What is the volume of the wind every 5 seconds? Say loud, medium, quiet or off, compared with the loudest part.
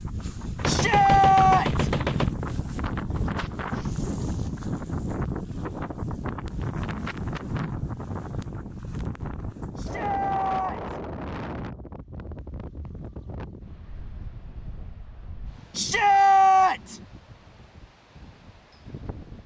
loud, loud, medium, quiet.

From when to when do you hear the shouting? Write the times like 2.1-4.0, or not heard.
0.7-1.9, 9.8-11.0, 15.8-17.0.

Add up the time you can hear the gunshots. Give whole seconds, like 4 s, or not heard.
2 s.